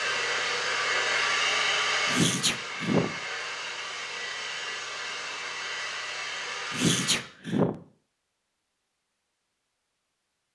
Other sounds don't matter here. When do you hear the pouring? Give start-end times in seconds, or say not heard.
not heard.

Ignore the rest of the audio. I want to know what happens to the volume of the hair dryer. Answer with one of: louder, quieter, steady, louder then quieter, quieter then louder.
quieter.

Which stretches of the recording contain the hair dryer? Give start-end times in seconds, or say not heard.
0.0-7.2.